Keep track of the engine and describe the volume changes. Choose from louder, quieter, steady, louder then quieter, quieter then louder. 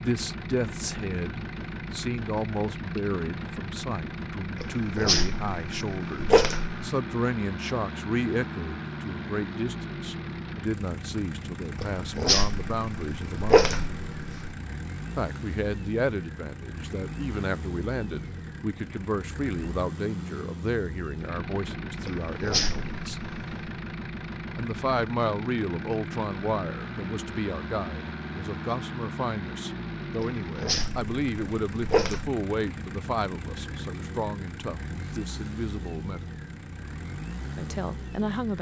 steady.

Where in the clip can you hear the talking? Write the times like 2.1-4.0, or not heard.
0.0-13.7, 15.2-23.2, 24.6-36.4, 37.5-38.5.